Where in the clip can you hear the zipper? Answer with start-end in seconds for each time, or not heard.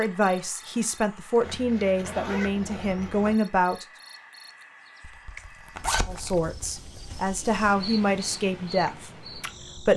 1.4-3.4, 5.0-6.5.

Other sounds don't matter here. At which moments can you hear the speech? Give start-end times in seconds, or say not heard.
0.0-3.9, 6.0-9.9.